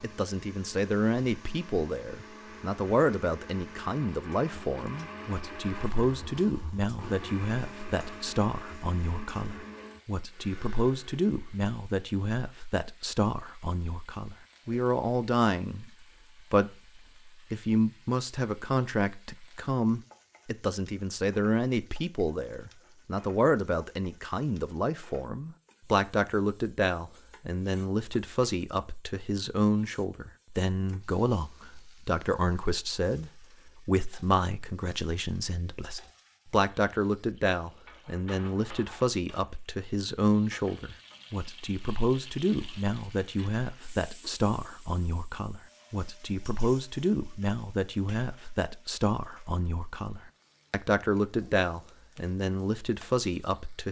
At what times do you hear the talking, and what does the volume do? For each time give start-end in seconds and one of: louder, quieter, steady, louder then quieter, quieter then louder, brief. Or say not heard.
0.0-53.8 steady.